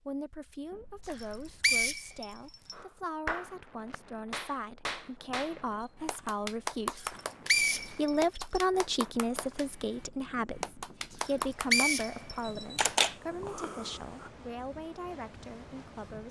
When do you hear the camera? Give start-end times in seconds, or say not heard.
0.7-2.4, 5.8-7.2, 12.4-14.3.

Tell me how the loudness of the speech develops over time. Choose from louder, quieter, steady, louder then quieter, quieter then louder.
louder then quieter.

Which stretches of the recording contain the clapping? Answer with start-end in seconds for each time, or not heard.
2.7-13.0.